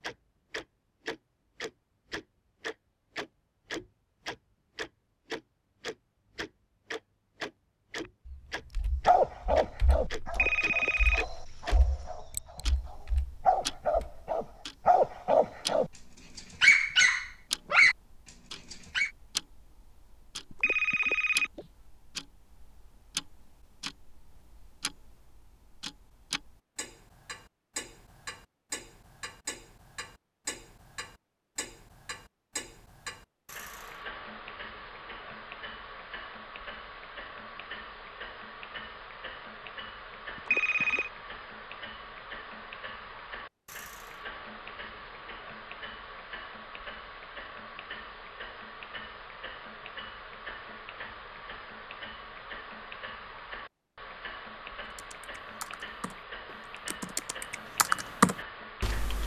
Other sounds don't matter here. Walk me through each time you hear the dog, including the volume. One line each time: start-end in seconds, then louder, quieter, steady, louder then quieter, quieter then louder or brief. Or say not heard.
9.1-17.9 quieter then louder
18.7-19.1 brief.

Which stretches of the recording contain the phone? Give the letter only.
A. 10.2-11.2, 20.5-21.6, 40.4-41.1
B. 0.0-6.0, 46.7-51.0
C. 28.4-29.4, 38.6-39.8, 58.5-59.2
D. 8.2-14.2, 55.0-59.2
A.